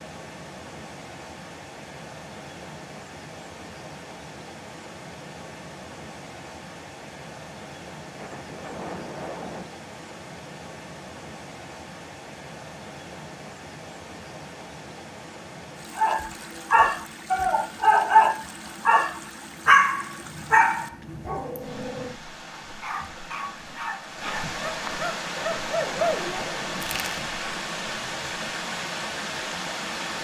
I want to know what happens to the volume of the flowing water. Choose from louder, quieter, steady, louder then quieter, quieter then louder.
louder.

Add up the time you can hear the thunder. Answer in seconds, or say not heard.
3 s.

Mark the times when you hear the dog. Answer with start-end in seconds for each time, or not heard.
15.9-27.2.